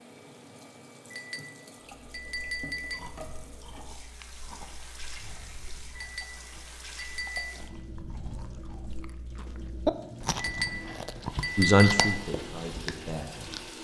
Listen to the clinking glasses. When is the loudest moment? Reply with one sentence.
The loudest moment of the clinking glasses is at 12 seconds.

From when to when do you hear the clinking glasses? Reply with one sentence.
You can hear the clinking glasses from 1.1 to 3.0 s, from 6.0 to 7.6 s and from 10.3 to 12.2 s.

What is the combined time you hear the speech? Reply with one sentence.
The speech can be heard for 2 seconds in total.